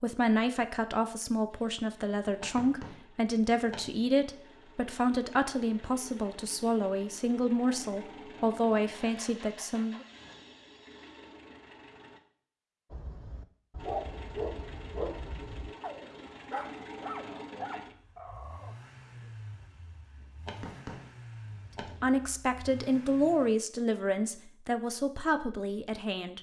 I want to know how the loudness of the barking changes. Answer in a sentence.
The loudness of the barking goes down.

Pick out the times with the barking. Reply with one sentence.
You can hear the barking from 12.9 to 19.3 s.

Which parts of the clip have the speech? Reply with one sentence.
You can hear the speech from 0.0 to 10.1 s and from 22.0 to 26.3 s.